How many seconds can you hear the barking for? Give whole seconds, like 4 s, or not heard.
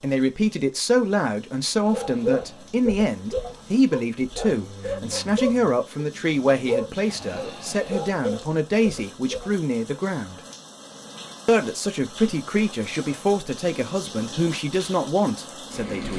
8 s.